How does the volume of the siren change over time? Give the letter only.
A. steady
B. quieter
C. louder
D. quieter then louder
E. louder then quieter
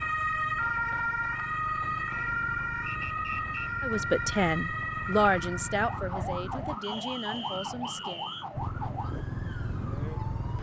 B.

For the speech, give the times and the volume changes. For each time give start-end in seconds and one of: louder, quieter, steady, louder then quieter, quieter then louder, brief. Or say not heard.
3.8-8.3 quieter.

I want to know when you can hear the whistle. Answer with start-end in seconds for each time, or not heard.
2.9-3.7, 6.8-8.4.